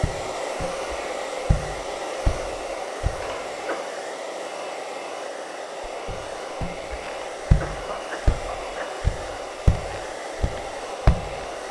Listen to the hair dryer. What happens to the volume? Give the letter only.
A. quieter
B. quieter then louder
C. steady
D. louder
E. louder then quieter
C.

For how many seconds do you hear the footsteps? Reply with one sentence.
The footsteps can be heard for 9 seconds in total.